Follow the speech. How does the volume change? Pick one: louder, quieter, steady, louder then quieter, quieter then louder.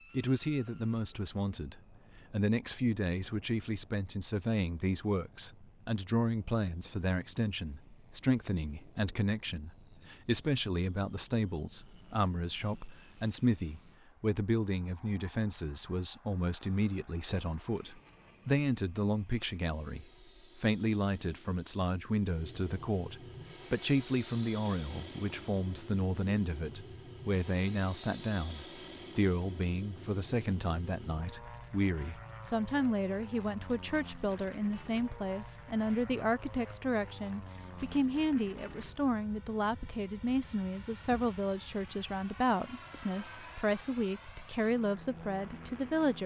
steady.